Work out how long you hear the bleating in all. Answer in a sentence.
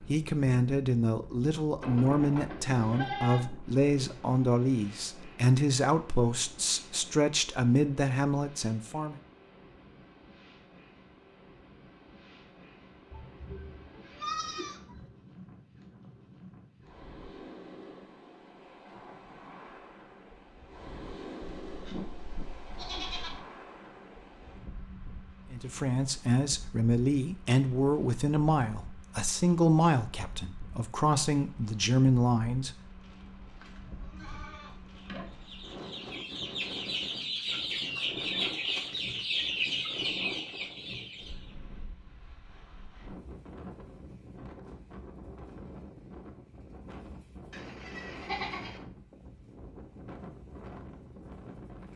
You can hear the bleating for 9 seconds altogether.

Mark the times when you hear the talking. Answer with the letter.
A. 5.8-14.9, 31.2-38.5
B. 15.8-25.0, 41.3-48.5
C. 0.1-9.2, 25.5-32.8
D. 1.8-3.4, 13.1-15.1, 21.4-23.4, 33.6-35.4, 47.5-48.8
C.